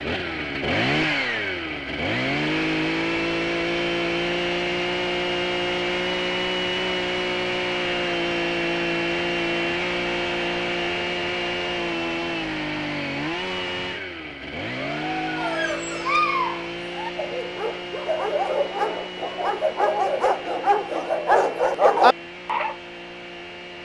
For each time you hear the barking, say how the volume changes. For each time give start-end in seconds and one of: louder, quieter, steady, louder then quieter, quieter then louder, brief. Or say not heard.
14.8-22.8 quieter then louder.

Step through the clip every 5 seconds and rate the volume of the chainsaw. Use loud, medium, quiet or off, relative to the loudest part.
loud, loud, loud, medium, quiet.